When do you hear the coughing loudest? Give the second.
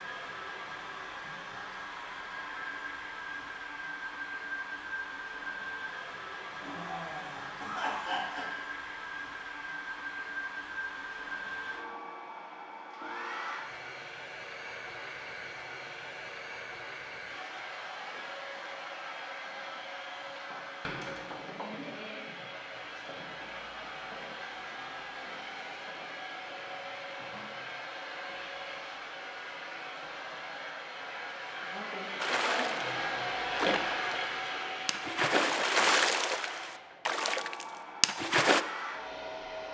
8 s.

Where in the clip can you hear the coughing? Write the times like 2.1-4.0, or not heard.
6.6-8.6.